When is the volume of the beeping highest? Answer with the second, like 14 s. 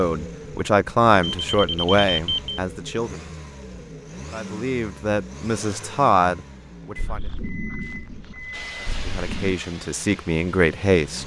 2 s.